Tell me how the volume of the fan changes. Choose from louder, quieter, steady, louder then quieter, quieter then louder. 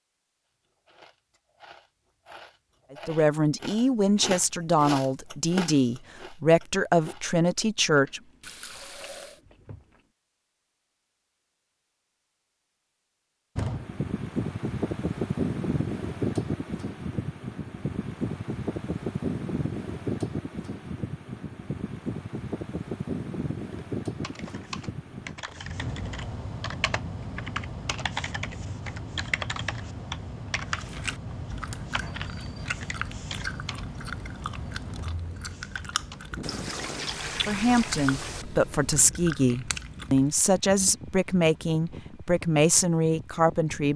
quieter.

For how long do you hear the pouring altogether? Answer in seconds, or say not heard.
3 s.